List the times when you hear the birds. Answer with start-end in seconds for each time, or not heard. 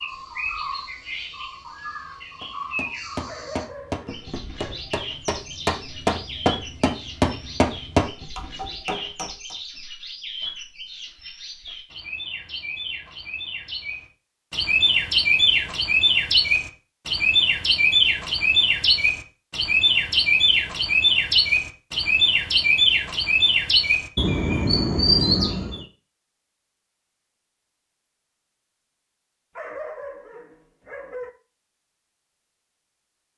0.0-25.9.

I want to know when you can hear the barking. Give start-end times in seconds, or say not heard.
3.2-4.8, 29.6-31.3.